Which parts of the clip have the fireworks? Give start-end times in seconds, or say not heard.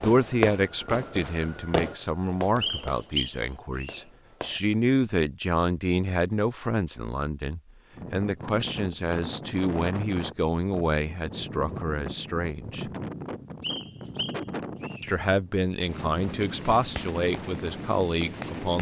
0.0-4.6, 16.6-18.7.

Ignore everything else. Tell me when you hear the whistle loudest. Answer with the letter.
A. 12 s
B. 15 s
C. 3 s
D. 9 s
C.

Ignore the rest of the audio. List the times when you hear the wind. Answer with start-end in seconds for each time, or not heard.
7.9-18.7.